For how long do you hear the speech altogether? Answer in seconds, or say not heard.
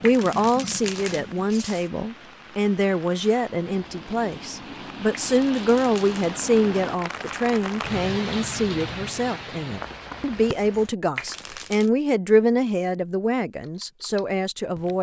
15 s.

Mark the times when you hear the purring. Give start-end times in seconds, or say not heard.
not heard.